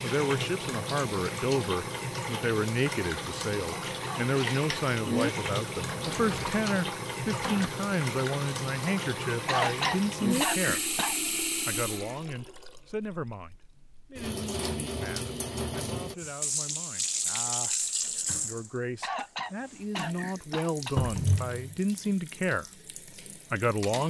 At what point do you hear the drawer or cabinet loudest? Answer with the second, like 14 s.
21 s.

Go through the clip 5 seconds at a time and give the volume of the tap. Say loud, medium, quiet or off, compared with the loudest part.
loud, loud, loud, loud, medium.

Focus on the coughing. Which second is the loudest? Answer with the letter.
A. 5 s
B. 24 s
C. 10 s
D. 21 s
C.